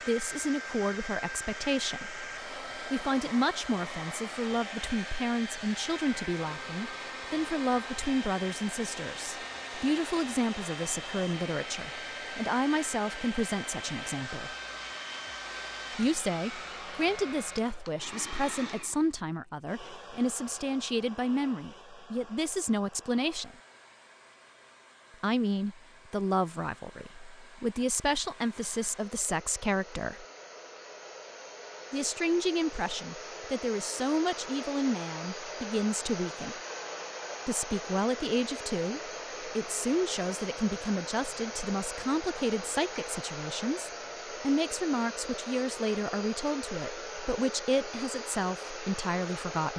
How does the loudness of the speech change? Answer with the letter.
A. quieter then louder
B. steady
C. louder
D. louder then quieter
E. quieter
B.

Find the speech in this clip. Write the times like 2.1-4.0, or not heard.
0.1-14.6, 15.9-23.6, 25.2-30.2, 31.9-36.6, 37.5-49.7.